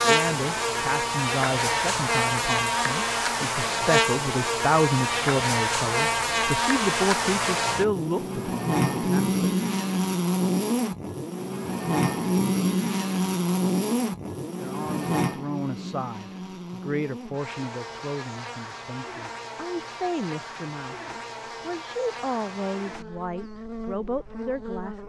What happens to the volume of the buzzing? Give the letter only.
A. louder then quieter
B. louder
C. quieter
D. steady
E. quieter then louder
C.